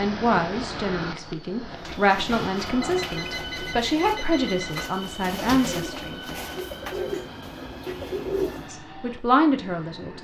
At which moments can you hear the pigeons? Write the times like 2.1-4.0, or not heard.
1.7-8.8.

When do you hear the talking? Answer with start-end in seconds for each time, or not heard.
0.0-6.2, 8.7-10.1.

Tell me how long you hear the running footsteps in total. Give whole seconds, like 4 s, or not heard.
not heard.